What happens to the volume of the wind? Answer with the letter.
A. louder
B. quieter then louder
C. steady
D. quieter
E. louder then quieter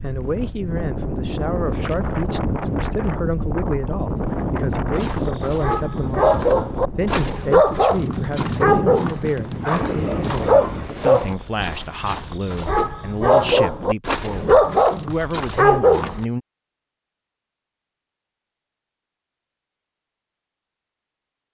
C.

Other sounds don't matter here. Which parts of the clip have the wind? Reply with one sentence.
You can hear the wind from 0.0 to 11.3 s.